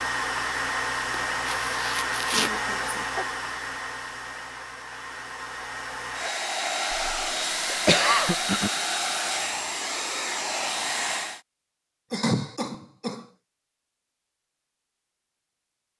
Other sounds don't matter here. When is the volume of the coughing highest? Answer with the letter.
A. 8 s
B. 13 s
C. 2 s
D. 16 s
A.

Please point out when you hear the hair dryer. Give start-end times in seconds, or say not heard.
0.0-11.4.